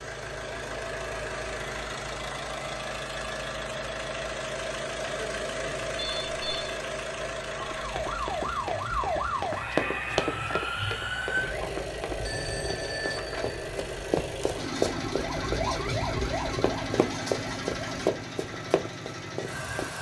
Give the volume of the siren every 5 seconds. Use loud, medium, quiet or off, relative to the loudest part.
off, loud, loud, loud.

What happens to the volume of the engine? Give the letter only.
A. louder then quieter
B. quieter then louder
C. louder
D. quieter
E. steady
E.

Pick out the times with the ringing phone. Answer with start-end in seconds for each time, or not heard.
6.0-6.8, 12.2-13.7.